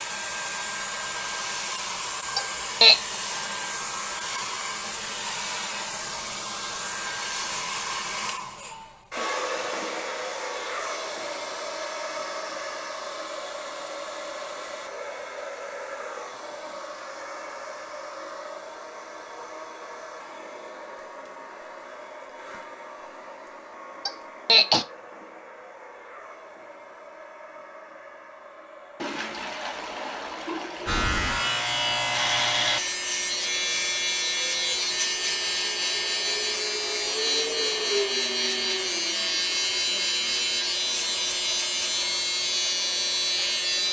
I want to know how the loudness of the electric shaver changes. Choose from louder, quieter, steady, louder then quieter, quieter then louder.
steady.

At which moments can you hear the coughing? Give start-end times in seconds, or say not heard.
2.4-3.0, 24.1-24.9.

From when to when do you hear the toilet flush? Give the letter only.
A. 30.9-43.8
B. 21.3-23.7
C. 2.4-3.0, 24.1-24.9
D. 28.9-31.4
D.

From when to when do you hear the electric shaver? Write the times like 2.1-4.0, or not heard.
30.9-43.8.